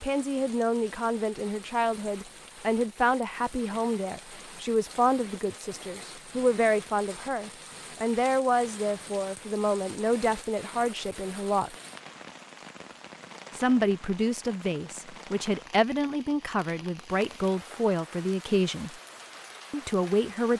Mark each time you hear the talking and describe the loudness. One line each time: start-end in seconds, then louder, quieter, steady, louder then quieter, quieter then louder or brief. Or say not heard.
0.0-11.8 steady
13.6-18.9 steady
19.7-20.5 brief.